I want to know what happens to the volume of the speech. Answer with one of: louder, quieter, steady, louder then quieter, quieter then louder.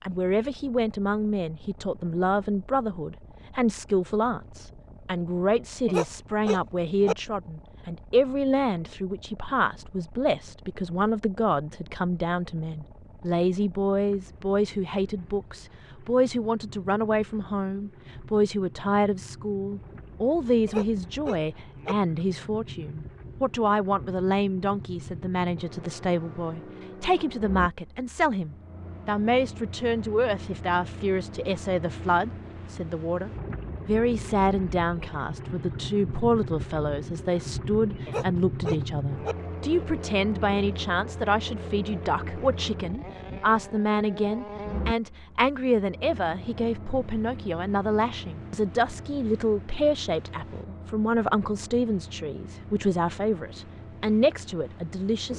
steady.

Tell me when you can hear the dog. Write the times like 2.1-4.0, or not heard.
5.8-7.2, 20.6-21.9, 38.0-39.4.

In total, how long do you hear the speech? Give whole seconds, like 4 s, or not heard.
55 s.